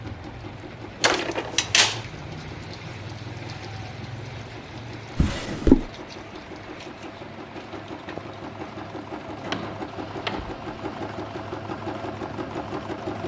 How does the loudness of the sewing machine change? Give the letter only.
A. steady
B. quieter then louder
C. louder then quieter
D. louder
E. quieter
D.